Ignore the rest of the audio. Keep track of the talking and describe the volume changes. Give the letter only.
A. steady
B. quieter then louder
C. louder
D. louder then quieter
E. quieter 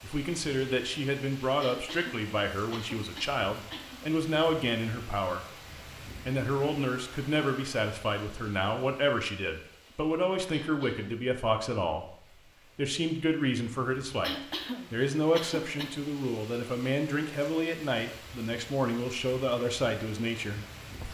A.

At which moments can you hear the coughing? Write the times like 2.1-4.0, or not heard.
1.6-4.0, 10.5-11.2, 14.2-15.9.